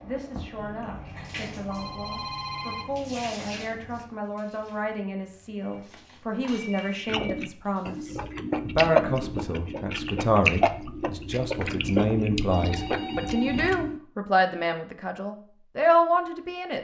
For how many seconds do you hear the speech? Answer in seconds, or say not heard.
17 s.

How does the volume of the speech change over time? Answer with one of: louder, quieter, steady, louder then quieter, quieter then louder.
louder.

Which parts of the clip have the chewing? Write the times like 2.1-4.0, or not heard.
7.0-14.0.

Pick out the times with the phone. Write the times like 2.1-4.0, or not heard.
1.7-2.9, 5.6-7.1, 11.6-13.8.